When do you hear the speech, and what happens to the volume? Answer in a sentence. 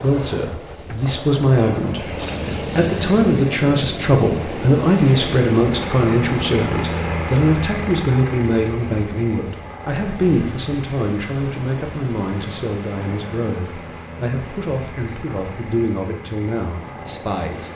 The speech can be heard from 0.0 to 17.7 s, getting quieter.